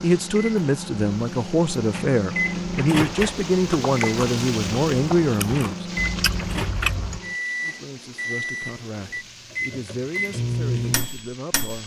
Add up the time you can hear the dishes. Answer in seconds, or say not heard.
not heard.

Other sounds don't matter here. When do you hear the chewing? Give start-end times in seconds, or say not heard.
3.0-7.2.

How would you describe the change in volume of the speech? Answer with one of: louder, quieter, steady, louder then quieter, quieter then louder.
quieter.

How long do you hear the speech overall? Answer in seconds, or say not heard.
10 s.